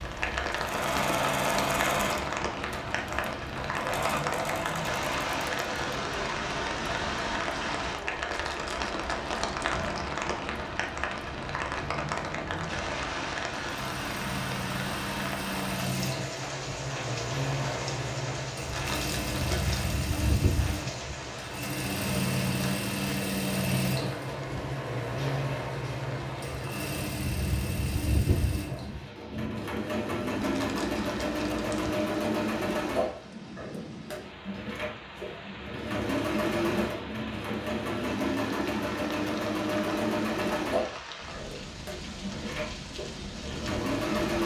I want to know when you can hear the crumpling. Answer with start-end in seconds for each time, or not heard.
8.3-10.1, 18.7-20.1, 30.4-32.0.